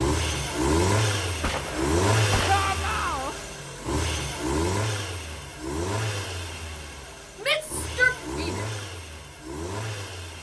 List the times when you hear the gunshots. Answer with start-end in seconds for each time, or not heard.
1.4-2.5.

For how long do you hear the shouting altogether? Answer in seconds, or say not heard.
2 s.